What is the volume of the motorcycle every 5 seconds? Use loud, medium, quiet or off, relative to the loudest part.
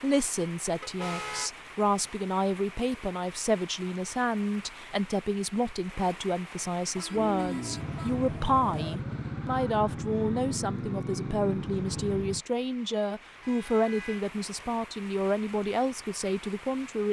off, loud, loud, off.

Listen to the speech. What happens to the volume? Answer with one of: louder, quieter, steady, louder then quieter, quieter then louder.
steady.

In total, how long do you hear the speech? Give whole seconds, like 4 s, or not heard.
17 s.